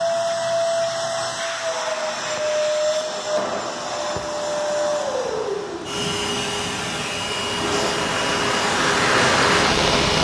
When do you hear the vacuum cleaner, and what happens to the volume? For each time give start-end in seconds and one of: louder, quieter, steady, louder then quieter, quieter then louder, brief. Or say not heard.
0.0-10.1 steady.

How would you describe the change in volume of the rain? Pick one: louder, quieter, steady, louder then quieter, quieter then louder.
louder.